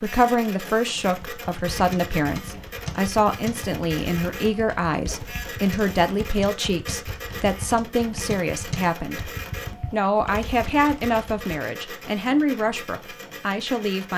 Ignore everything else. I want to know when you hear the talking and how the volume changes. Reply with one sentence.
You can hear the talking from 0.0 to 14.1 s, at a steady volume.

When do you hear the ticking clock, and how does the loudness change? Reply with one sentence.
You can't hear the ticking clock here.